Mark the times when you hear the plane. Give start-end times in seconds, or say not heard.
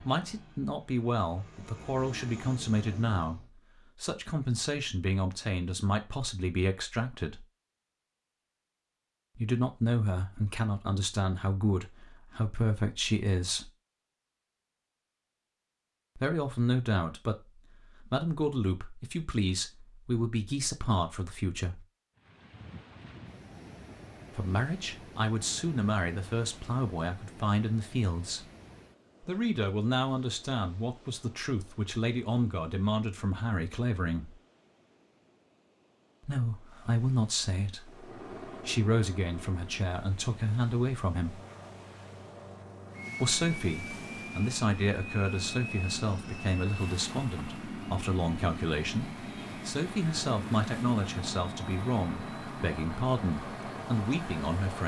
0.0-3.5, 37.8-54.8.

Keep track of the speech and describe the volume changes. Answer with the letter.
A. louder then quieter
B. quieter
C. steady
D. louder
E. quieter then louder
C.